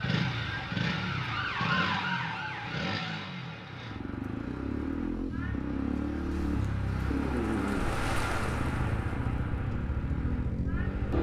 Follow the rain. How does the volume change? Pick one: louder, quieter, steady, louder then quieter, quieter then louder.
louder then quieter.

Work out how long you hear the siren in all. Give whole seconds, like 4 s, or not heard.
3 s.